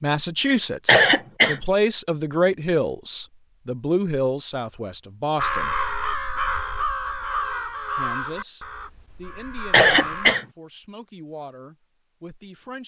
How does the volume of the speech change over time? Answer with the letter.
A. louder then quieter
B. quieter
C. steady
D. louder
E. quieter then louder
B.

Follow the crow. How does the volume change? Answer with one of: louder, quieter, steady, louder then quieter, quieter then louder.
quieter.